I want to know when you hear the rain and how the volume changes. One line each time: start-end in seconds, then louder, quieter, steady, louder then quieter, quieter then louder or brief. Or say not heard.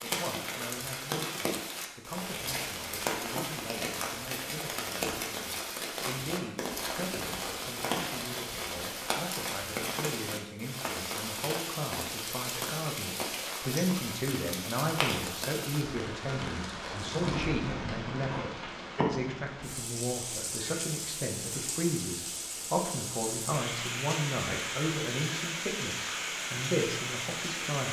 0.0-27.8 steady.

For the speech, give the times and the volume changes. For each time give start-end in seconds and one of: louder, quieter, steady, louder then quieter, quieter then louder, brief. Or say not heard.
0.0-27.8 louder.